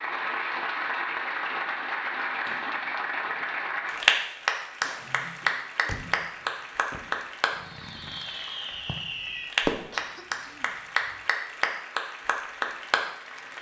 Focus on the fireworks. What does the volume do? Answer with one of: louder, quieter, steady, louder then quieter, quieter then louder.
quieter then louder.